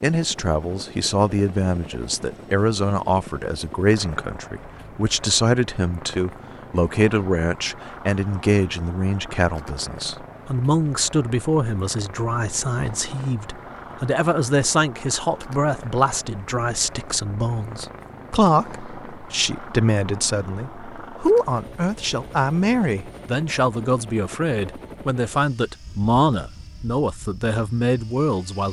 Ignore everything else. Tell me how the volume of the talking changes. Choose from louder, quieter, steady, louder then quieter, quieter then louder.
steady.